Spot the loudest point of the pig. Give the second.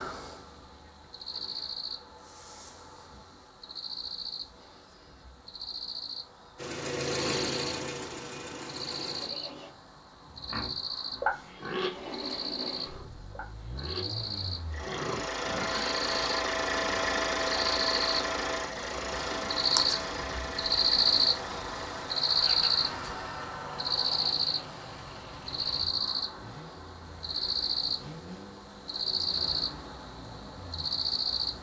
11 s.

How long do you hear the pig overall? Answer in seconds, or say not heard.
6 s.